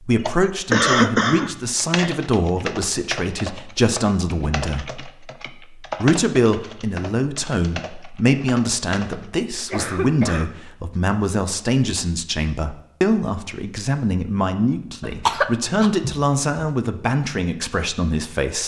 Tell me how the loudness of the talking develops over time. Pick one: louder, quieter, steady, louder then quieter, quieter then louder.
steady.